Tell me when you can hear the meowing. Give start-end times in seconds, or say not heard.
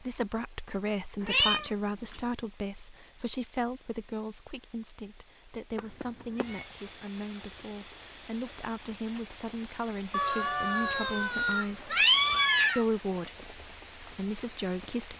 1.2-2.2, 5.8-6.7, 10.1-12.8.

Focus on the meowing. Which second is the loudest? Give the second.
12 s.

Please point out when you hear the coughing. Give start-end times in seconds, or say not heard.
not heard.